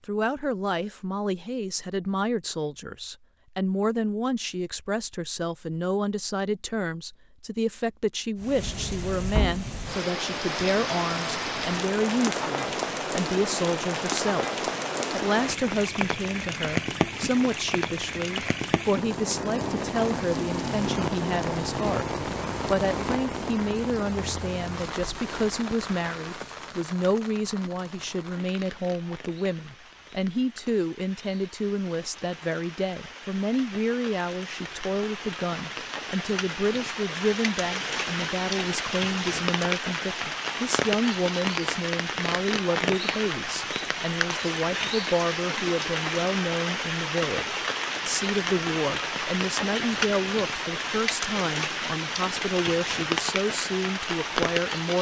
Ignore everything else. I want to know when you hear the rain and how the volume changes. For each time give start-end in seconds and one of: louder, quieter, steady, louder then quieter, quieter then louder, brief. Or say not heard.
8.3-54.9 quieter then louder.